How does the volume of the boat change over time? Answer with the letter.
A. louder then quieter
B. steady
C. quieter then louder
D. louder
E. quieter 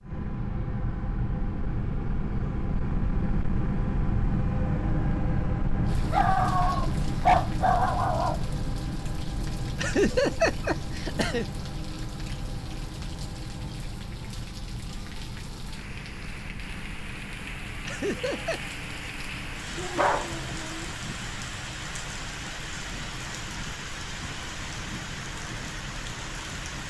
E.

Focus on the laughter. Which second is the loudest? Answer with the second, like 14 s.
10 s.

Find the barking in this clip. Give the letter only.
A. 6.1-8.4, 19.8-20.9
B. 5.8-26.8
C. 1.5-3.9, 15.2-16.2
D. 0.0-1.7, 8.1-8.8
A.